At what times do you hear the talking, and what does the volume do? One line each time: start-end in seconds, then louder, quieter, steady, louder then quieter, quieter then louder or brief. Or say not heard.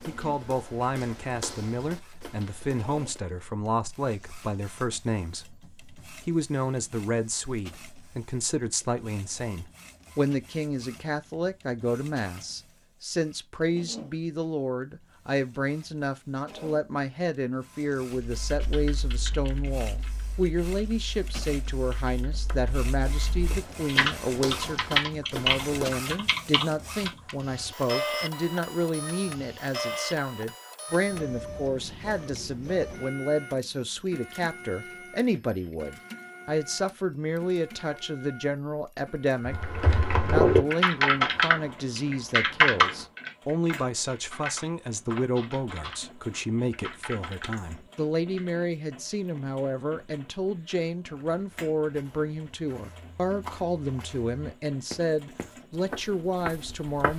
0.1-57.1 steady.